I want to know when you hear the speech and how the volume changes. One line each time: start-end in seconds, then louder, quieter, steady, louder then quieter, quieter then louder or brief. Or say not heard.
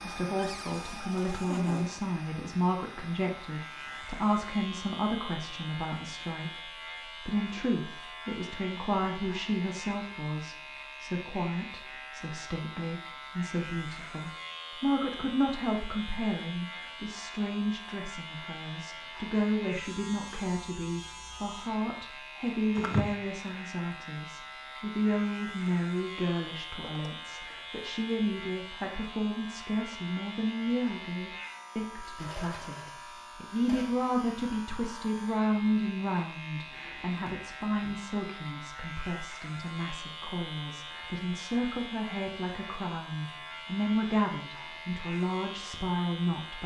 0.0-46.6 steady.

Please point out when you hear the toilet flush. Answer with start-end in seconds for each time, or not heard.
not heard.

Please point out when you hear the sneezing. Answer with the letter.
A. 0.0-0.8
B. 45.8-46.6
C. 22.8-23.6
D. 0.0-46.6
C.